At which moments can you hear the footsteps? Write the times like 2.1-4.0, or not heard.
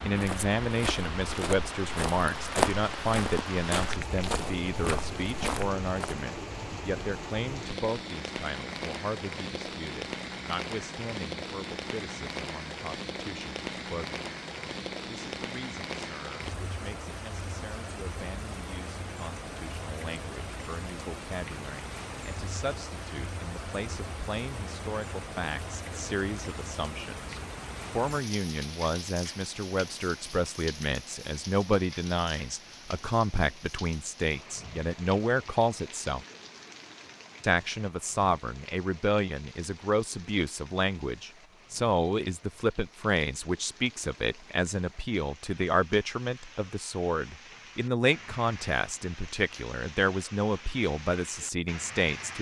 0.1-6.2.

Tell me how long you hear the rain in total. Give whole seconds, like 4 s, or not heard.
52 s.